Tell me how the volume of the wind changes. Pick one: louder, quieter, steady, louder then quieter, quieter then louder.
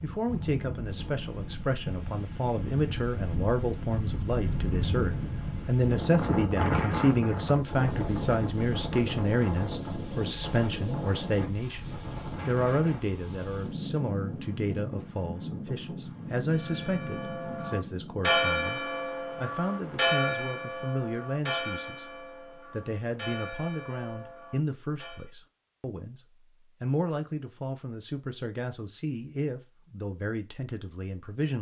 louder then quieter.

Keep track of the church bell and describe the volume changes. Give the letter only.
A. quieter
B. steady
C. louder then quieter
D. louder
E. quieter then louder
A.